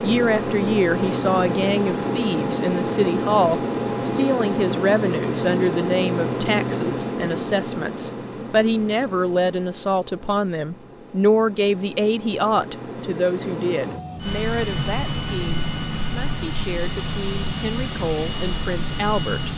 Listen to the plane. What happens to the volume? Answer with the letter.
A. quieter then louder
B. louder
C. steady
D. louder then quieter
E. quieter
A.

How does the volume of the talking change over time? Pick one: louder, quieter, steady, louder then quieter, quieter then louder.
quieter.